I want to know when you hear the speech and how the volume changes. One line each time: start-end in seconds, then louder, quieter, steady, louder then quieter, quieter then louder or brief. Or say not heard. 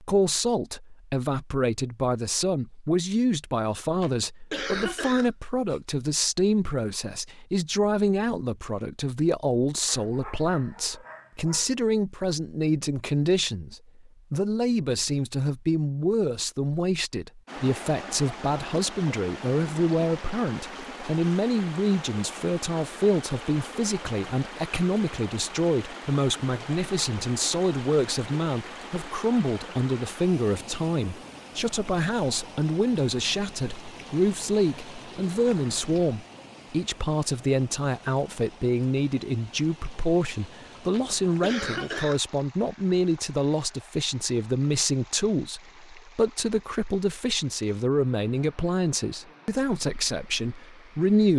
0.0-51.3 steady.